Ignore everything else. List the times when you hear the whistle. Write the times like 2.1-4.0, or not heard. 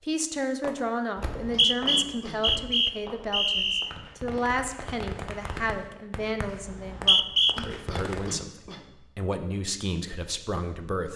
1.2-3.9, 6.7-7.5.